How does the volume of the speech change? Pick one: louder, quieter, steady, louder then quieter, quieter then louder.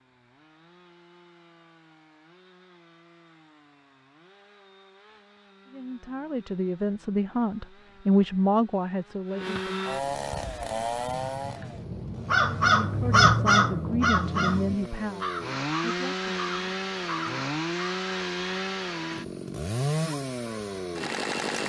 louder then quieter.